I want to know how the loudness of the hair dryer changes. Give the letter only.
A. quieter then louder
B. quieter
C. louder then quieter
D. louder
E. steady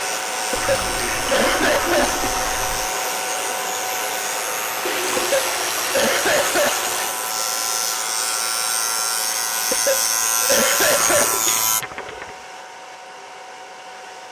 B.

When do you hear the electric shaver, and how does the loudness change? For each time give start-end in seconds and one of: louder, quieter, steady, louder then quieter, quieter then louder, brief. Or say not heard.
0.0-11.8 louder.